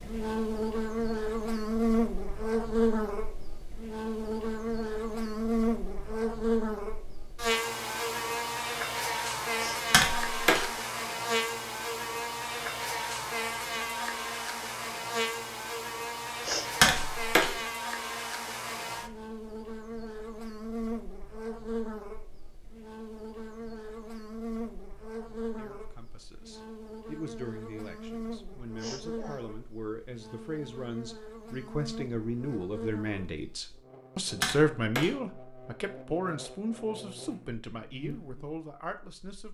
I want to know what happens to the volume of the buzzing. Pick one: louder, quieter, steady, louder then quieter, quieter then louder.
quieter.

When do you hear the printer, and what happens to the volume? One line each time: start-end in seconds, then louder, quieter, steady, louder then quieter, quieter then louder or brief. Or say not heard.
not heard.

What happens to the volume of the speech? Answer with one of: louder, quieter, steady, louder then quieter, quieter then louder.
louder then quieter.